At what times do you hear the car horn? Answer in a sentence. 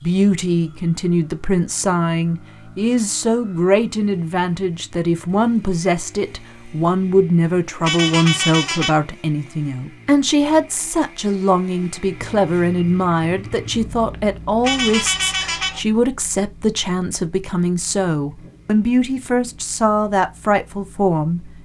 The car horn can be heard from 7.8 to 9.0 s and from 14.6 to 15.8 s.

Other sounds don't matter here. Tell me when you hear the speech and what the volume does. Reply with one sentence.
The speech can be heard from 0.0 to 21.4 s, at a steady volume.